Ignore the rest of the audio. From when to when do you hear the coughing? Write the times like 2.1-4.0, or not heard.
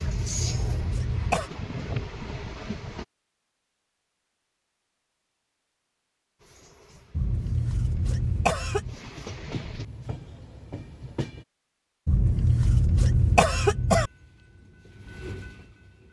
0.0-1.5, 7.1-9.0, 12.1-14.1.